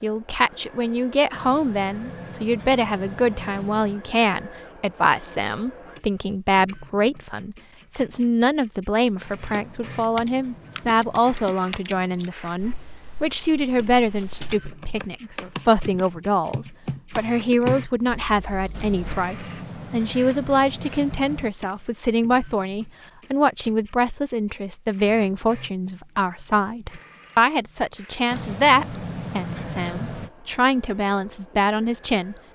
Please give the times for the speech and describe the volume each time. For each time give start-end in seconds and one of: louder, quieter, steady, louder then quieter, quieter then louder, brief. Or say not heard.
0.0-32.4 steady.